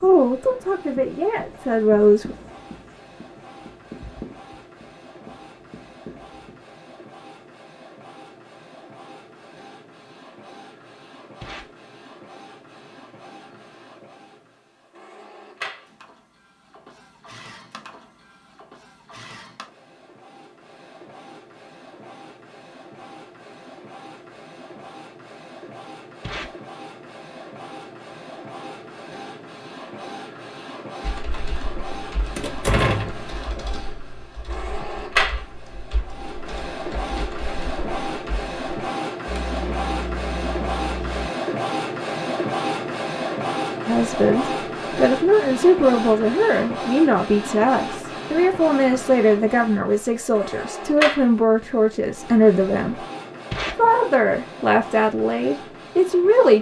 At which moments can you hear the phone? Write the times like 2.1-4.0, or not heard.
not heard.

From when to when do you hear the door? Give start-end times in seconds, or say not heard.
32.4-33.2.